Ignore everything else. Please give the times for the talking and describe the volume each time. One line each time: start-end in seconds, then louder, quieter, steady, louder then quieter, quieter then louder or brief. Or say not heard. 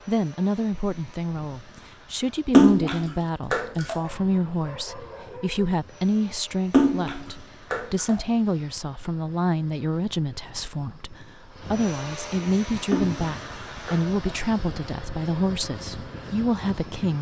0.1-17.1 steady.